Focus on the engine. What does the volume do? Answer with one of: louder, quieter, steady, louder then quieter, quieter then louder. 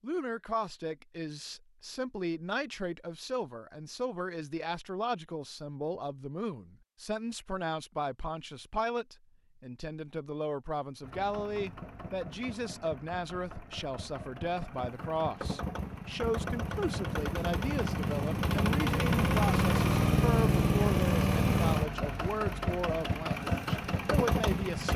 louder then quieter.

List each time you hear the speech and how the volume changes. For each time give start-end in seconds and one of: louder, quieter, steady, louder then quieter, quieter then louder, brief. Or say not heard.
0.0-24.9 steady.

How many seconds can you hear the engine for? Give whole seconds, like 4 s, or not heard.
14 s.